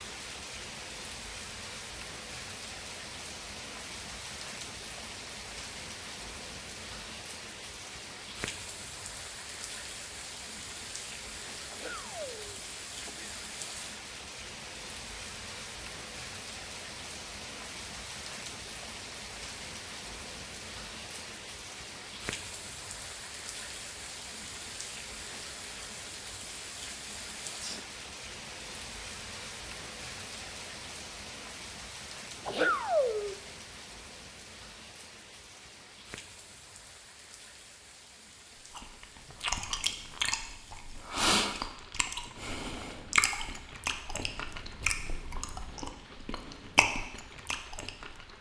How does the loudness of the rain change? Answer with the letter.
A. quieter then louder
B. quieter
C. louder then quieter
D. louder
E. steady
B.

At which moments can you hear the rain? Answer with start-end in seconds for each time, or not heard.
0.0-48.3.